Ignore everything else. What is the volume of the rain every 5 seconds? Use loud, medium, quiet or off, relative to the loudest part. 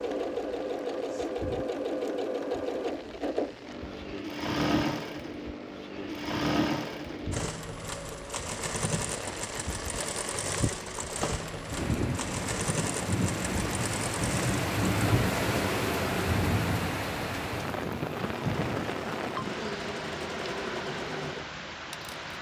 quiet, quiet, loud, loud, medium.